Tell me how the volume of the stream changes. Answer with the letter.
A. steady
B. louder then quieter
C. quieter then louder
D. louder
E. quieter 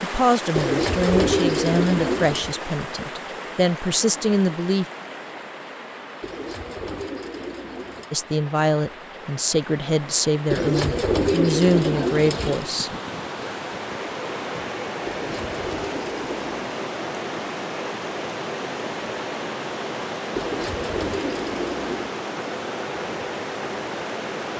C.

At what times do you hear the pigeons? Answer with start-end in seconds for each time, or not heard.
0.6-2.5, 6.2-8.1, 10.5-12.7, 15.1-16.5, 20.4-22.1.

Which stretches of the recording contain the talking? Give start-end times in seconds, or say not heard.
0.0-4.8, 8.1-12.9.